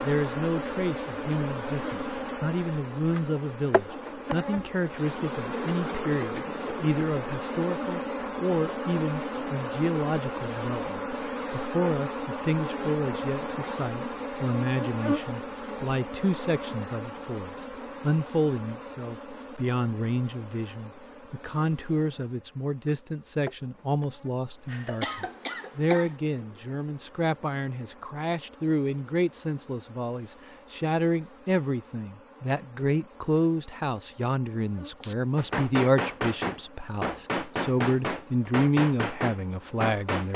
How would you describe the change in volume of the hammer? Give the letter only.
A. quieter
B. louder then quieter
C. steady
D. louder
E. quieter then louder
C.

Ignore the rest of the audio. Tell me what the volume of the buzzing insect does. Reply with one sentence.
The loudness of the buzzing insect goes down.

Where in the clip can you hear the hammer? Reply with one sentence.
You can hear the hammer from 35.0 to 40.3 s.